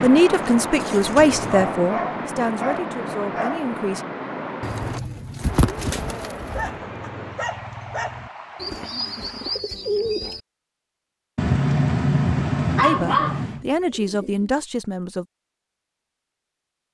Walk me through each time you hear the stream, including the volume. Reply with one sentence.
You can hear the stream from 0.0 to 9.7 s, getting quieter.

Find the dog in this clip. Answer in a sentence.
You can hear the dog from 1.4 to 3.7 s, from 6.5 to 8.3 s and from 11.3 to 13.7 s.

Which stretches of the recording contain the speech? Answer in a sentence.
You can hear the speech from 0.0 to 4.0 s and from 12.8 to 15.2 s.